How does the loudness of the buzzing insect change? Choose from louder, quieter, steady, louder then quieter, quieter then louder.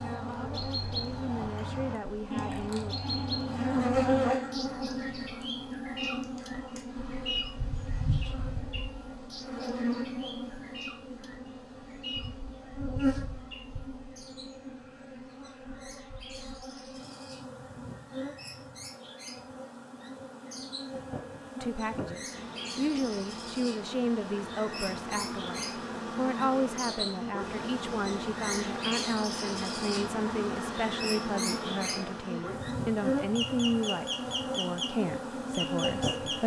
quieter then louder.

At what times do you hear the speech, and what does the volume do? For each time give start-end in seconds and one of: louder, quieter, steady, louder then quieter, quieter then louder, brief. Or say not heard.
0.0-3.0 brief
21.6-36.4 steady.